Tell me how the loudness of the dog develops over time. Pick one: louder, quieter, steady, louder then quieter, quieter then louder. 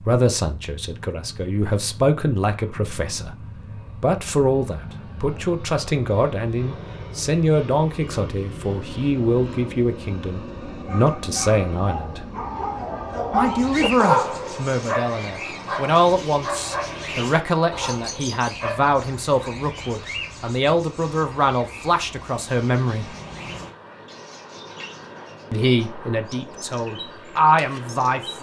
louder then quieter.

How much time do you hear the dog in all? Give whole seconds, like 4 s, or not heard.
9 s.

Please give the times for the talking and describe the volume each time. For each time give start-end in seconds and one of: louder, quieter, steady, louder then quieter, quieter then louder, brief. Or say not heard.
0.0-12.2 steady
13.3-23.1 steady
25.5-28.3 brief.